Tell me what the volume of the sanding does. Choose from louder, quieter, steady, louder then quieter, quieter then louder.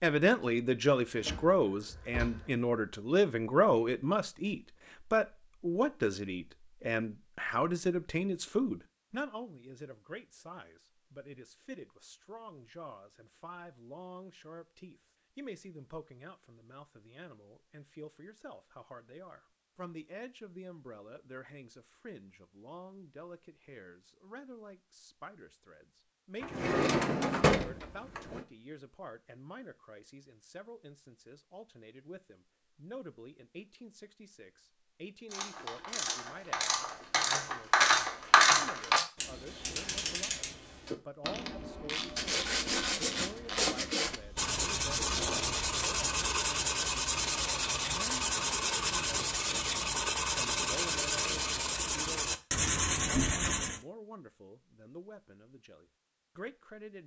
steady.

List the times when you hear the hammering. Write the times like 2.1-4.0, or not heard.
not heard.